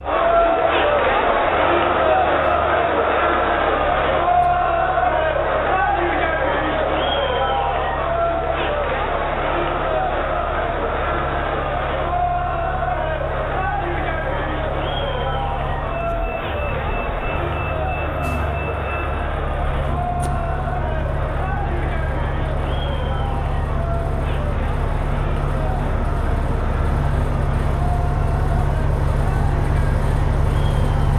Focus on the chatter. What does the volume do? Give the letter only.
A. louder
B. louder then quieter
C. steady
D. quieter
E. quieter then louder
D.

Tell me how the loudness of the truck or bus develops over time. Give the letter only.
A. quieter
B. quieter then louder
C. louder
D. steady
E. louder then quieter
C.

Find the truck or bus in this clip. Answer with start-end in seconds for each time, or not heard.
0.0-31.1.